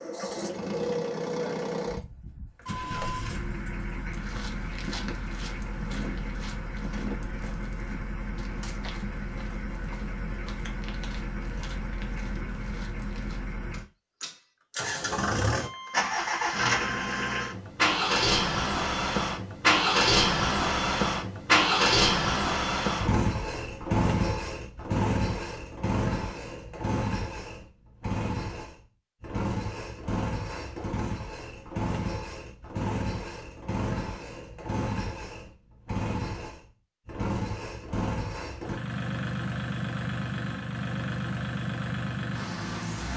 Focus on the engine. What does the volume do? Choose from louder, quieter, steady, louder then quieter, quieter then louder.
louder then quieter.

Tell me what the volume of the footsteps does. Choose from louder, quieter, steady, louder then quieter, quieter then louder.
quieter.